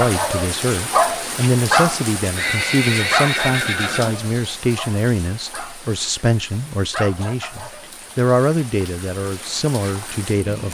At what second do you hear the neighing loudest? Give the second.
3 s.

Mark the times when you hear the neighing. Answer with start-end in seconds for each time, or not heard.
2.4-4.2.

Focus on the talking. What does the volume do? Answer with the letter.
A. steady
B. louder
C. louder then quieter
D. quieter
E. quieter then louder
A.